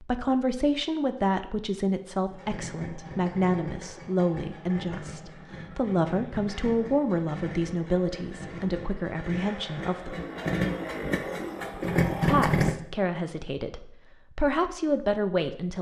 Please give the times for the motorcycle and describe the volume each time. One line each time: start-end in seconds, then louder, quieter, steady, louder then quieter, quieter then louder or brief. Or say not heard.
2.2-12.8 louder.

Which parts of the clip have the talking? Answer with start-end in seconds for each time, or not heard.
0.0-10.2, 12.2-15.7.